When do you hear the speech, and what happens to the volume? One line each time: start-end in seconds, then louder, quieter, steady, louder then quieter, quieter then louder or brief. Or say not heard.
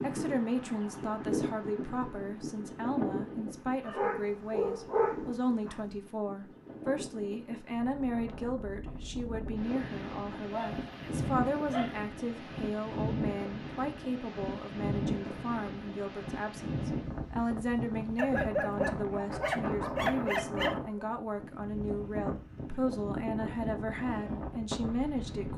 0.0-25.5 steady.